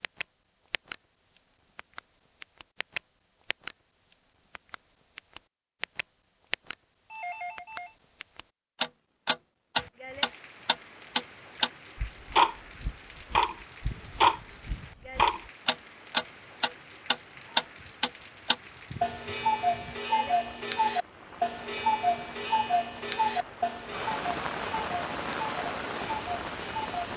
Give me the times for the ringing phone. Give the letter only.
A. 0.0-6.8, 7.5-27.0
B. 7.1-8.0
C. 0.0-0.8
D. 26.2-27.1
B.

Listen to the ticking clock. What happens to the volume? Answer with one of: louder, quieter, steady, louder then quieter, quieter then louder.
louder then quieter.